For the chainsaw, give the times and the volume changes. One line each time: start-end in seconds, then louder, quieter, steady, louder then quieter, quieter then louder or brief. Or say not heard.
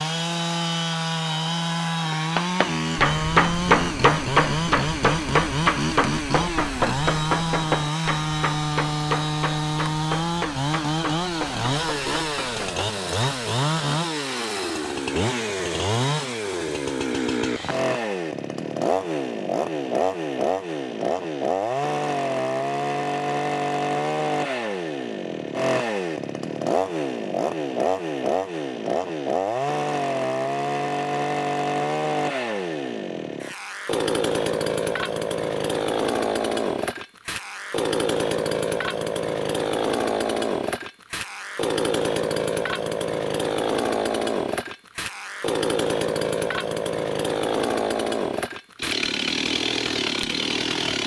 0.0-51.0 steady.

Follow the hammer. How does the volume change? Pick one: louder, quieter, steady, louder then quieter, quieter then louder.
quieter.